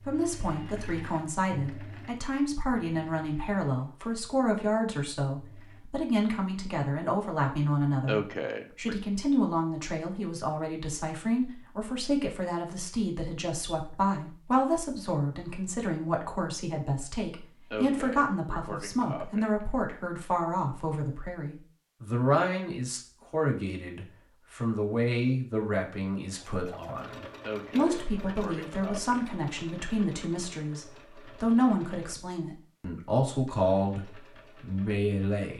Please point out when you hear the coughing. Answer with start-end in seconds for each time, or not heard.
8.1-8.9, 17.7-19.5, 27.4-29.2.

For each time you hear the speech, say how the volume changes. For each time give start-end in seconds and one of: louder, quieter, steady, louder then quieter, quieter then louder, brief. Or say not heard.
0.0-35.5 steady.